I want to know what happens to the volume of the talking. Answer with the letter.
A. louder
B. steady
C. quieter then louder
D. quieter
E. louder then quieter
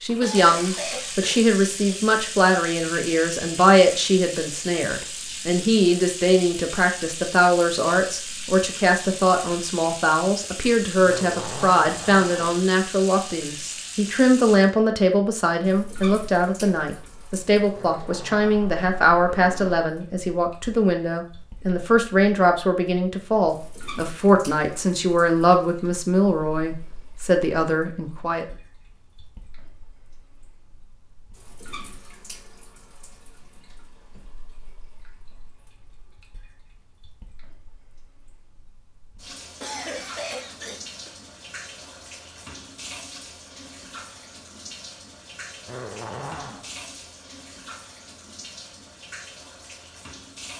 B.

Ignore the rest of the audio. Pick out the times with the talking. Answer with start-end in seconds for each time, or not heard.
0.0-28.4.